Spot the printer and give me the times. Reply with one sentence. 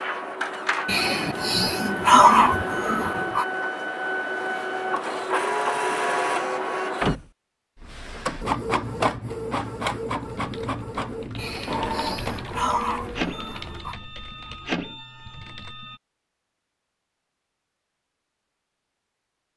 You can hear the printer from 0.0 to 16.0 s.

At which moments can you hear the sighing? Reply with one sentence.
You can hear the sighing from 0.8 to 3.5 s and from 11.3 to 13.9 s.